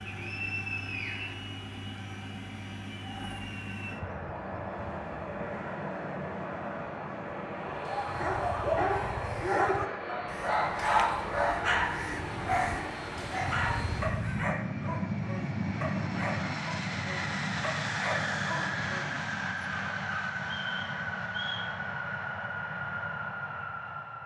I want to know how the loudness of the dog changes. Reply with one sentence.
The loudness of the dog goes down.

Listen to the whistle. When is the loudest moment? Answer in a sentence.
The volume of the whistle peaks at 1 second.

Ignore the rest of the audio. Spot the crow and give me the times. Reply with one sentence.
The crow can be heard from 7.7 to 14.6 s.